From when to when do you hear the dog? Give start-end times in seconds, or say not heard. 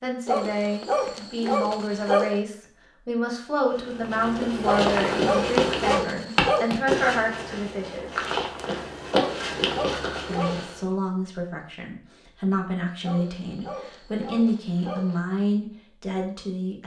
0.2-2.4, 4.6-6.8, 9.1-10.8, 13.0-15.2.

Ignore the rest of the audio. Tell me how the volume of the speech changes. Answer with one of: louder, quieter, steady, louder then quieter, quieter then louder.
steady.